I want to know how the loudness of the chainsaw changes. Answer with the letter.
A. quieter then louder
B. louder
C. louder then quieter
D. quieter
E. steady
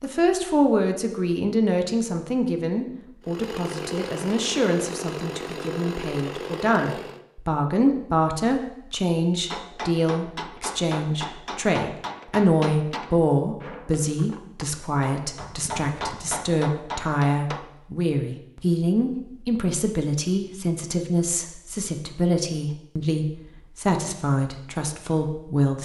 E.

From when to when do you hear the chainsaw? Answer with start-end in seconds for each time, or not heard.
3.2-7.2.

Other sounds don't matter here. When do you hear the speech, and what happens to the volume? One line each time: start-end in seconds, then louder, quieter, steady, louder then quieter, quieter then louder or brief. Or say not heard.
0.0-25.8 steady.